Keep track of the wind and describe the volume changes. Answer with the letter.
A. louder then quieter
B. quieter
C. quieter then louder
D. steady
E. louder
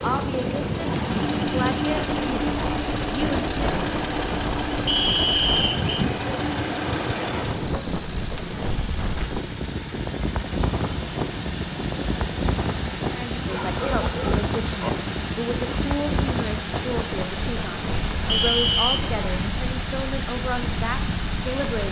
B.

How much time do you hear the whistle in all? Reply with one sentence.
You can hear the whistle for 2 seconds altogether.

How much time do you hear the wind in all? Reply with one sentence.
You can hear the wind for 22 seconds altogether.